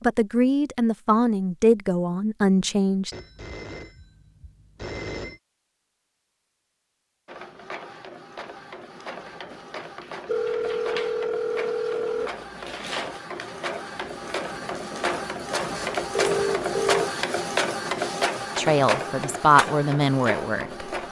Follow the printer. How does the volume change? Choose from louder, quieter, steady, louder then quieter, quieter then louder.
louder.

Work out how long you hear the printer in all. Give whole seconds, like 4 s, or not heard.
14 s.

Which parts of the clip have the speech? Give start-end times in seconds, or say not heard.
0.0-3.1, 18.6-20.9.